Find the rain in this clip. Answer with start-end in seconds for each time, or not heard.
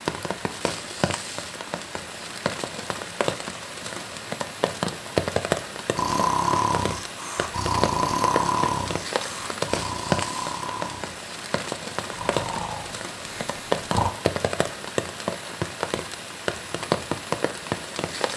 0.0-18.3.